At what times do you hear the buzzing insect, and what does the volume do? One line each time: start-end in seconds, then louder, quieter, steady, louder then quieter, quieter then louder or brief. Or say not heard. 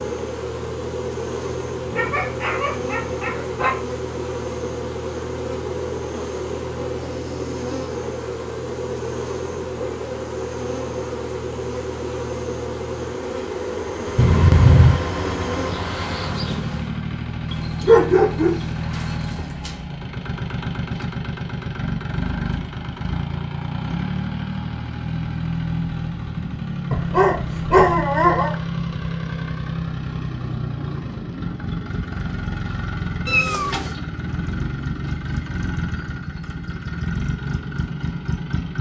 0.0-17.0 steady.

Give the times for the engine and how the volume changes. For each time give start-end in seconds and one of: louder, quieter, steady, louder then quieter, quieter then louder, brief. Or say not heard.
0.0-38.7 louder.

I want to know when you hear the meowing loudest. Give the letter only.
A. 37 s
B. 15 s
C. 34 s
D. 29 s
B.